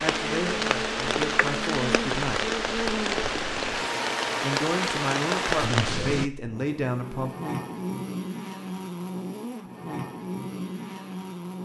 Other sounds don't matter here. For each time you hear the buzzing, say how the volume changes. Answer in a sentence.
The buzzing can be heard from 0.0 to 11.6 s, at a steady volume.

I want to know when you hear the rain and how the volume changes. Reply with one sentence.
The rain can be heard from 0.0 to 6.3 s, at a steady volume.